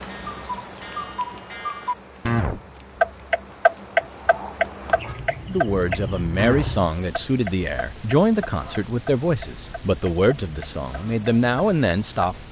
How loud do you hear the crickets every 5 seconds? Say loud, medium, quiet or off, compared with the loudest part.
medium, loud, loud.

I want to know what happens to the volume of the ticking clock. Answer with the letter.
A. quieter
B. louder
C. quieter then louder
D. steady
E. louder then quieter
E.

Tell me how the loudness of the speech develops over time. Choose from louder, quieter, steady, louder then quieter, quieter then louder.
steady.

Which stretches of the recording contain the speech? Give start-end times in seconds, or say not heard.
5.5-12.3.